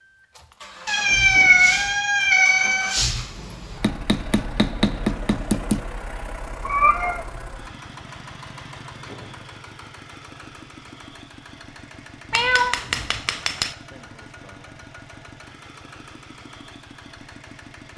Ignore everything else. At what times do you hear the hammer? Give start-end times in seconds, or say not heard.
3.8-5.8, 12.3-13.8.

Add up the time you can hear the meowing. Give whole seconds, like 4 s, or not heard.
4 s.